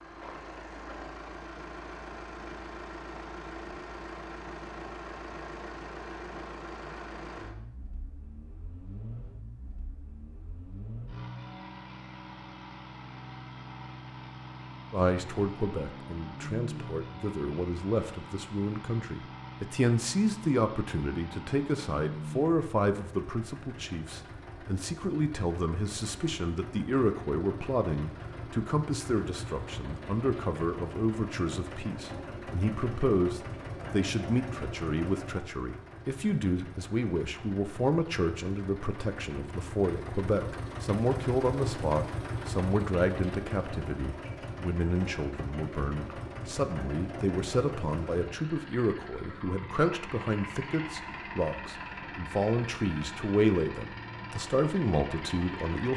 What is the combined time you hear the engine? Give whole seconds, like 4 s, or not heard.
56 s.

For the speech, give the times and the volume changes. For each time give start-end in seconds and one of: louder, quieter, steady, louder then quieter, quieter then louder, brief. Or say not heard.
14.9-55.9 steady.